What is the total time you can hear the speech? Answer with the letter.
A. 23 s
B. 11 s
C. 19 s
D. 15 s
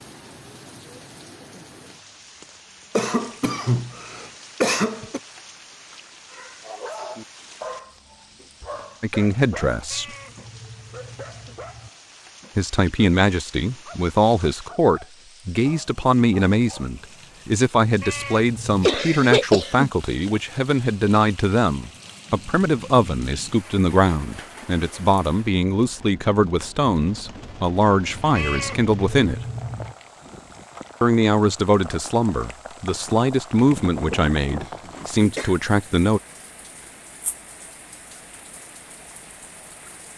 A.